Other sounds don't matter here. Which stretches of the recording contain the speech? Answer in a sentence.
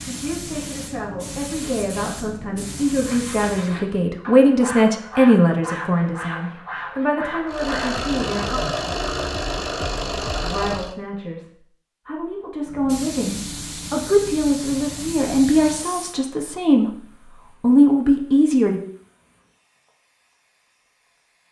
You can hear the speech from 0.0 to 8.6 s, from 10.4 to 17.0 s and from 17.6 to 18.8 s.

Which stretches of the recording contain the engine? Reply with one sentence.
The engine can be heard from 7.5 to 10.9 s.